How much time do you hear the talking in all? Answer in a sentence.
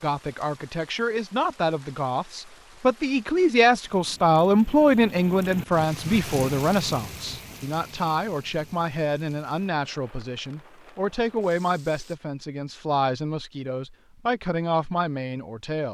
You can hear the talking for 16 seconds altogether.